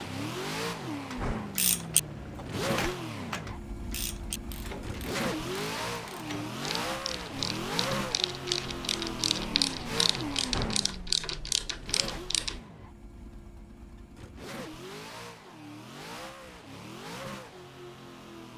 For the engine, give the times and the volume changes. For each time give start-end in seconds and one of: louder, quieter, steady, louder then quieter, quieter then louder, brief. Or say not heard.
0.0-18.5 quieter.